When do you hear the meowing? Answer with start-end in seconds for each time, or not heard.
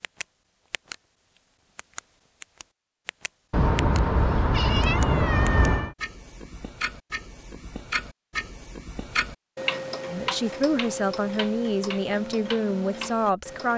3.5-6.0.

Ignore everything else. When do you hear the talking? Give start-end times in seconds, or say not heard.
10.1-13.7.